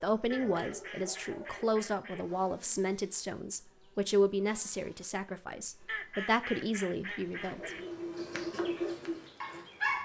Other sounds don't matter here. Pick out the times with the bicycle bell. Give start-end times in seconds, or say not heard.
not heard.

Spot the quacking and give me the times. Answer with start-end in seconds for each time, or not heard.
0.3-2.2, 5.8-7.8.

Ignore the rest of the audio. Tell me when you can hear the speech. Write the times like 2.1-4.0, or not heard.
0.0-7.7.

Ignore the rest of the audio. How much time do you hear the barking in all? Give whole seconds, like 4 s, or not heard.
5 s.